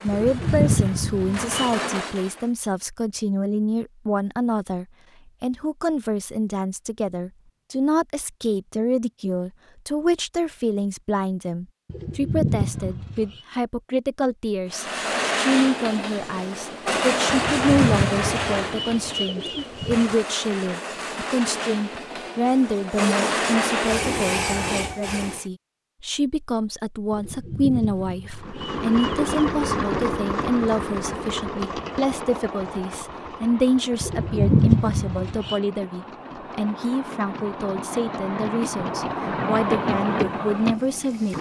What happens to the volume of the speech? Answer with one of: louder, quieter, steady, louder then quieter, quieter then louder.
steady.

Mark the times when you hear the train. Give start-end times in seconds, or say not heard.
0.0-2.5, 14.7-25.4, 28.4-41.3.